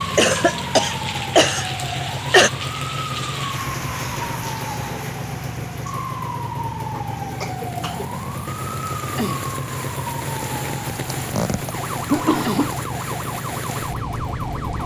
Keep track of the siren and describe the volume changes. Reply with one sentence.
The loudness of the siren stays about the same.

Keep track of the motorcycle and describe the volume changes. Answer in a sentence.
The loudness of the motorcycle stays about the same.